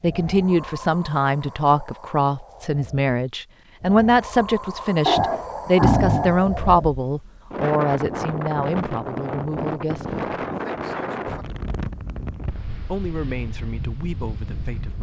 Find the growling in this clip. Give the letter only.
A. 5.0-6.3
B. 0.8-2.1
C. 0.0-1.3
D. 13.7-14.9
A.